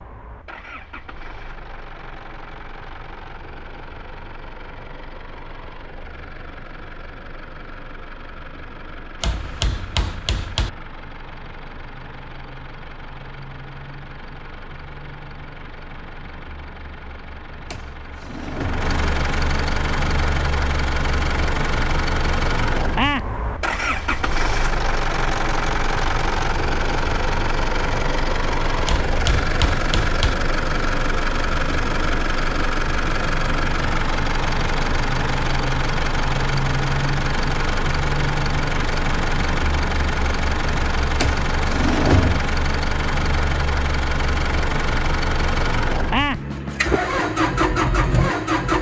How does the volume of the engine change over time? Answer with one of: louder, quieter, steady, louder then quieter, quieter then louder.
louder.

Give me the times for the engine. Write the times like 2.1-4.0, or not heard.
0.0-48.7.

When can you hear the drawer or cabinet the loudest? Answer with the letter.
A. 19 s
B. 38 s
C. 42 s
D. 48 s
C.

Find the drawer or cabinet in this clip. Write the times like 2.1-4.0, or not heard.
17.7-18.9, 41.2-42.5.